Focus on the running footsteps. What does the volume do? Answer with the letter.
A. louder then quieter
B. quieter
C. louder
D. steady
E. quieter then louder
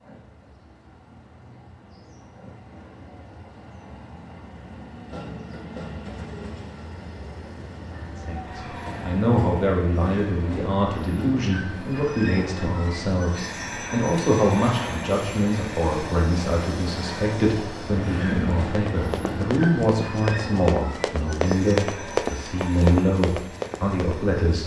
C.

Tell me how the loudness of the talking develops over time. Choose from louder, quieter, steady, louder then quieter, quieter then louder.
steady.